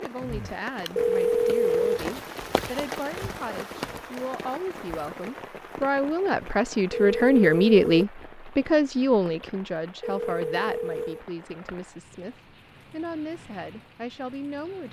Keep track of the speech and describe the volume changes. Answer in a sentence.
The volume of the speech goes up, then down.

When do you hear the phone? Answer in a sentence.
You can hear the phone from 0.9 to 2.0 s, from 6.9 to 8.1 s and from 10.0 to 11.2 s.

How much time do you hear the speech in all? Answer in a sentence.
The speech can be heard for 15 seconds in total.